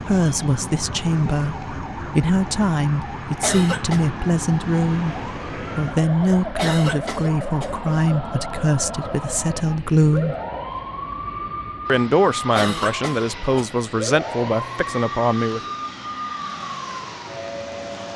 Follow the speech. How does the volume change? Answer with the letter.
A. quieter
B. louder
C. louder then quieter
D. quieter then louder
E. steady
E.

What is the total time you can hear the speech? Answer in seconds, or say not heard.
14 s.